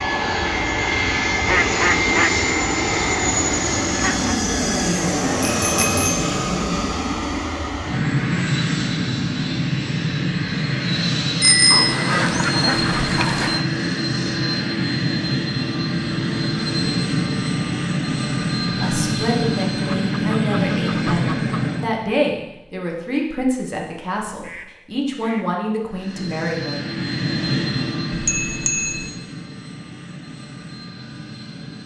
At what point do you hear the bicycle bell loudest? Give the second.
12 s.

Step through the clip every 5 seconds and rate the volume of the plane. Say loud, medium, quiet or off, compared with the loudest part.
loud, loud, loud, loud, loud, medium, quiet.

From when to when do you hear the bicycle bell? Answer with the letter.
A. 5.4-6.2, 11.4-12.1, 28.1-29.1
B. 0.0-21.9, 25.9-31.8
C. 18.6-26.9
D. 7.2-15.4
A.